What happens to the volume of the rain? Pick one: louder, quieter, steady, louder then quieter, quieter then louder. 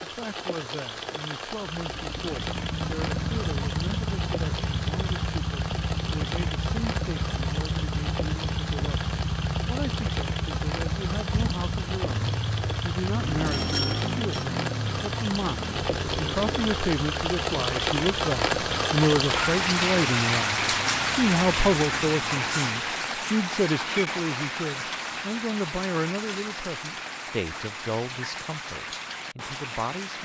louder then quieter.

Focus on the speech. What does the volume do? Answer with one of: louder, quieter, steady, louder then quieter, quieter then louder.
louder then quieter.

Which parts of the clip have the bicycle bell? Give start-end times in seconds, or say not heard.
13.4-14.4.